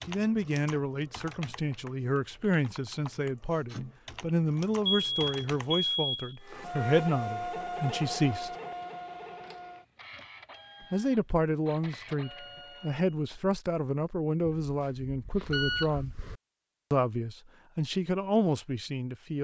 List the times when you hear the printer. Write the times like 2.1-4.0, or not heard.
6.4-13.1.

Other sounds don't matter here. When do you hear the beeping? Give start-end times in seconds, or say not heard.
4.8-6.3, 14.4-16.4.